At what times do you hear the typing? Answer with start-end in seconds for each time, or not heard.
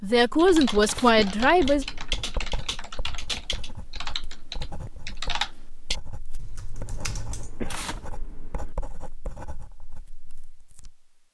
0.1-7.6.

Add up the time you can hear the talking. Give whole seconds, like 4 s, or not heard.
2 s.